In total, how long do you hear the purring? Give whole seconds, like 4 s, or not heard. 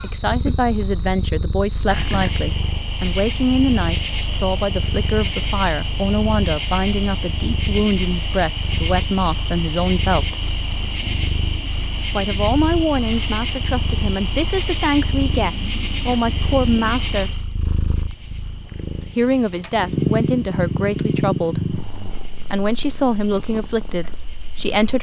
25 s.